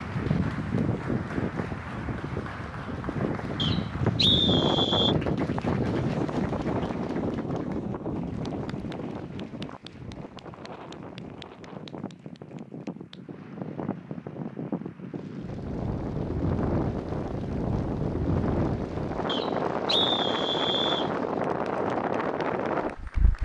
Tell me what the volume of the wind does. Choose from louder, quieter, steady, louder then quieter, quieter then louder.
quieter then louder.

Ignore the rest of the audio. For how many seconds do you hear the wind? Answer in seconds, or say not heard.
23 s.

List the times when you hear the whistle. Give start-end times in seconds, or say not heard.
3.5-5.2, 19.2-21.1.